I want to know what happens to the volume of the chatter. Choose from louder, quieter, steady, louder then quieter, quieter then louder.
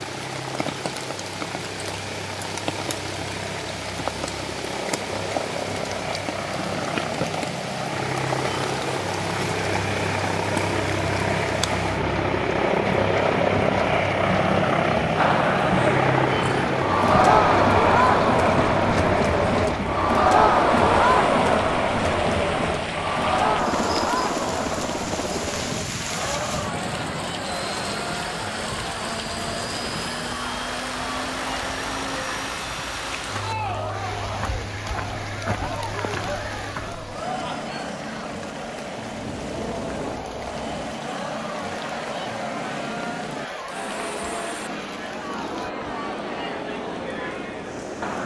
quieter.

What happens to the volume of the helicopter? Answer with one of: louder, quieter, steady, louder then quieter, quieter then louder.
louder then quieter.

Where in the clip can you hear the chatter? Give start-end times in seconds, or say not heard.
15.2-48.2.